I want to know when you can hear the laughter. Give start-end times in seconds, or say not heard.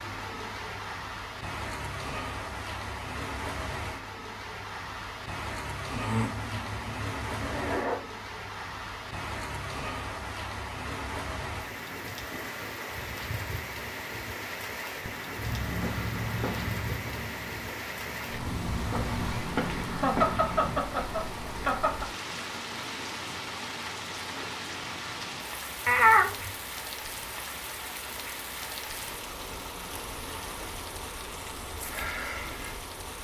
7.3-8.0, 19.9-22.1.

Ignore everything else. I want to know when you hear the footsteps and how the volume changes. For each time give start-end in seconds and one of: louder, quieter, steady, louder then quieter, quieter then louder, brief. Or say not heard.
15.3-20.8 quieter then louder.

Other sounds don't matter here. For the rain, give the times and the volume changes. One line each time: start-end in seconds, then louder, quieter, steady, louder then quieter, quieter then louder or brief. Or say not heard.
0.0-33.1 steady.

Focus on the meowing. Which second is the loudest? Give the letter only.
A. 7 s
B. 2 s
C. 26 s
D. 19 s
C.